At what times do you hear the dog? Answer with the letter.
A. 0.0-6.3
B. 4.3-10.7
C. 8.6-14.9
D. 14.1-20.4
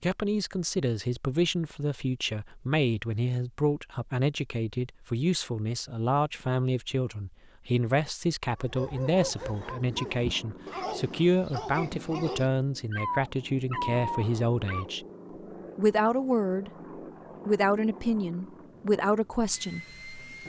C.